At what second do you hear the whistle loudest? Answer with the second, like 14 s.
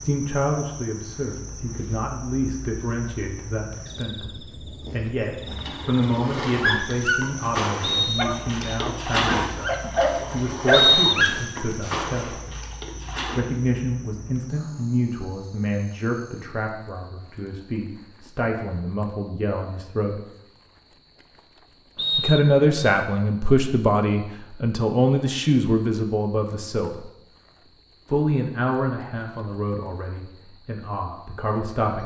11 s.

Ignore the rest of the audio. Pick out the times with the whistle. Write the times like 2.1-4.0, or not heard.
7.8-8.6, 10.7-11.4, 21.9-22.9.